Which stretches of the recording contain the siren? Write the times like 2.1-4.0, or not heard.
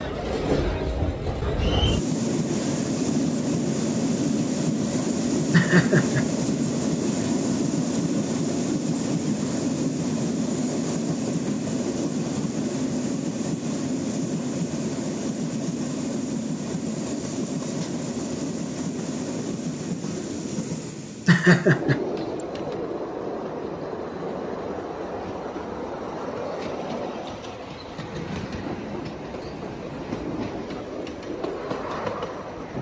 not heard.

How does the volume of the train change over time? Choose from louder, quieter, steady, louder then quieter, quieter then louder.
quieter.